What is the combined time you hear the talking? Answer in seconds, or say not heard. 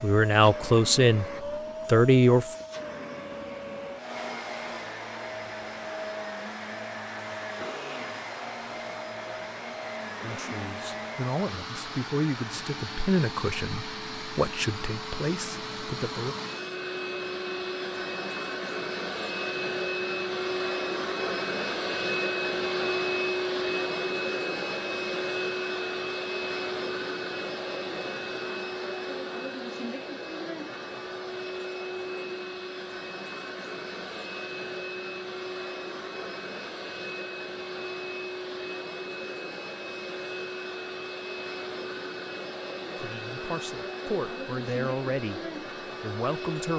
12 s.